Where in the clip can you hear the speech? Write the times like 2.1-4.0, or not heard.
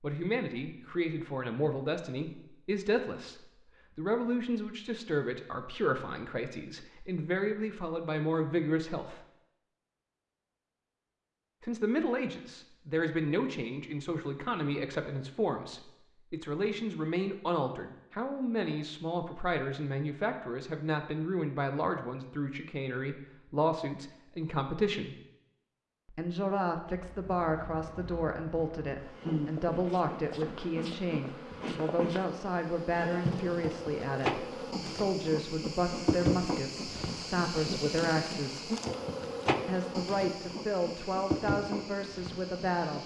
0.0-9.2, 11.6-25.1, 26.1-38.7, 39.6-43.0.